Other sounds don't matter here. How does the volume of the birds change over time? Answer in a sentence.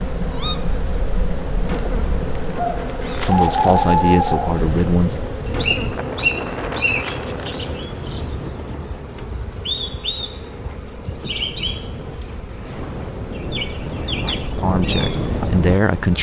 The loudness of the birds goes up, then down.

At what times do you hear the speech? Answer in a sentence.
The speech can be heard from 3.2 to 5.2 s and from 14.6 to 16.1 s.